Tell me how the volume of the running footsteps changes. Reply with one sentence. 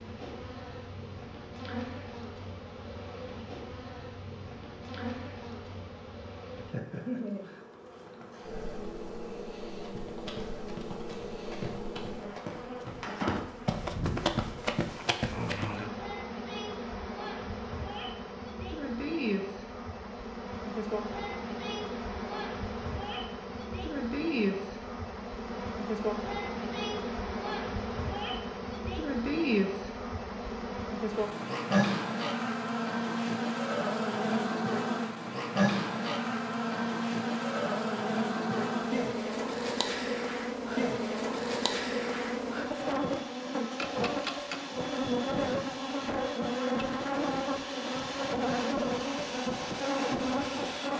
The loudness of the running footsteps goes up.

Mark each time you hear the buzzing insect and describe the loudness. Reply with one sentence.
You can hear the buzzing insect from 0.0 to 50.9 s, getting louder.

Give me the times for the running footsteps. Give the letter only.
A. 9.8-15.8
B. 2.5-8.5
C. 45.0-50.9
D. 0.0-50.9
A.